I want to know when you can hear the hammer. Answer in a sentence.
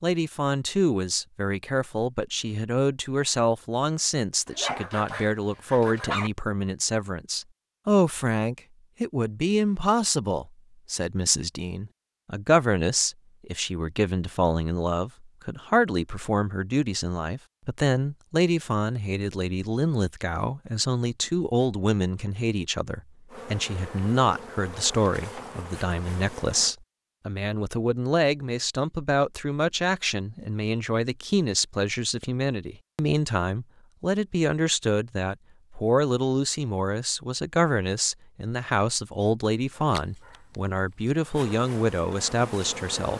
The hammer can't be heard in this clip.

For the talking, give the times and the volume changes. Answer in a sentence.
The talking can be heard from 0.0 to 43.1 s, at a steady volume.